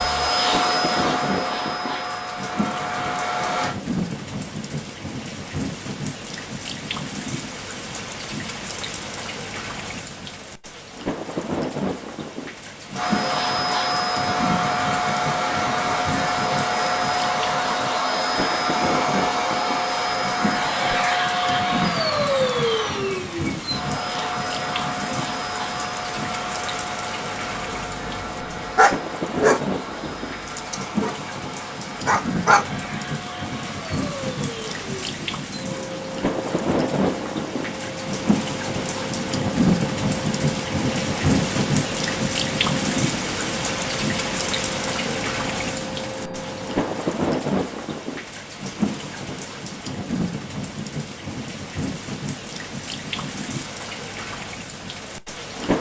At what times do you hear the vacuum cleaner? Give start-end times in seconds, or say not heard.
0.0-3.8, 12.9-47.0.